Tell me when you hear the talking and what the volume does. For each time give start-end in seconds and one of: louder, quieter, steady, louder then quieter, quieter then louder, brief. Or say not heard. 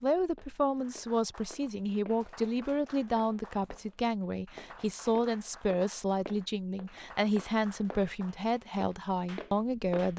0.0-10.1 steady.